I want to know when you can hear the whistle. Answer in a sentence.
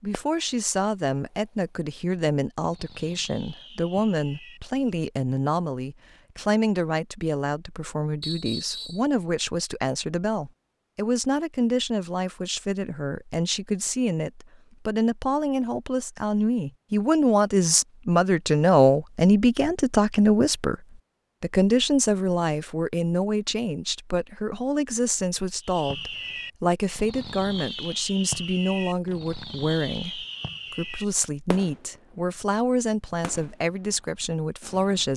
The whistle can be heard from 8.2 to 9.1 s.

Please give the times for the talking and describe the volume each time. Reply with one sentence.
You can hear the talking from 0.0 to 20.8 s, getting louder; and from 21.4 to 35.1 s, at a steady volume.